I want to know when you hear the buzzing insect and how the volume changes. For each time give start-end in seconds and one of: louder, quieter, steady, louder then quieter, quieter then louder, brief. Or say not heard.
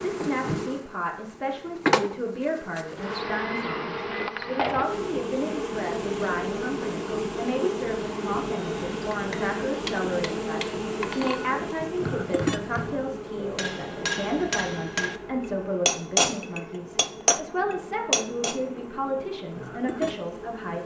0.0-20.8 quieter.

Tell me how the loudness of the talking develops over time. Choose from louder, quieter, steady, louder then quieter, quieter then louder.
steady.